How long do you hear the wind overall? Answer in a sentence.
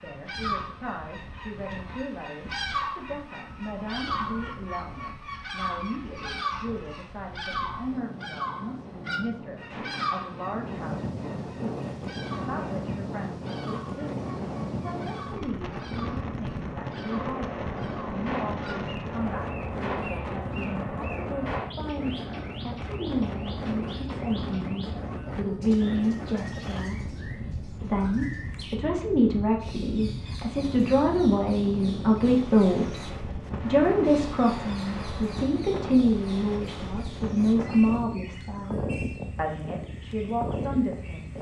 The wind can be heard for 41 seconds in total.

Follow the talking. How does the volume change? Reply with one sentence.
The loudness of the talking goes up.